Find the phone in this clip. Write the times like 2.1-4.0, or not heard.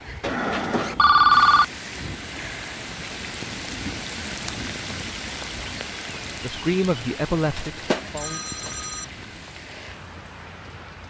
0.2-1.6, 7.5-9.1.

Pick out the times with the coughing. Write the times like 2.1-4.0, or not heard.
not heard.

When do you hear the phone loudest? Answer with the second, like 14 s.
1 s.